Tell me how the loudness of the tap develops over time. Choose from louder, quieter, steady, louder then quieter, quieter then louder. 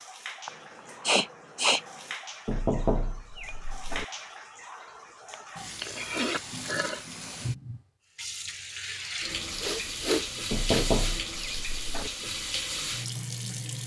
louder.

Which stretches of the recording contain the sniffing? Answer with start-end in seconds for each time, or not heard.
0.5-1.9, 5.8-7.0, 9.4-11.7.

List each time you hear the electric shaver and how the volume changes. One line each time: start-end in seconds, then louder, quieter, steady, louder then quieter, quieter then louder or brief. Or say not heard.
not heard.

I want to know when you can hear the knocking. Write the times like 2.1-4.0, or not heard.
2.5-4.0, 10.5-12.1.